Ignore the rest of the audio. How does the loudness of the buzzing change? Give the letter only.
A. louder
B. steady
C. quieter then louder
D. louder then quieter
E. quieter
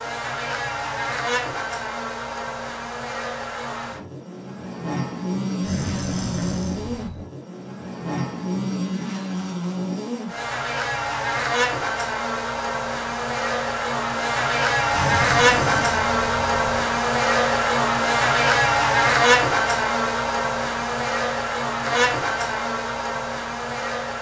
A.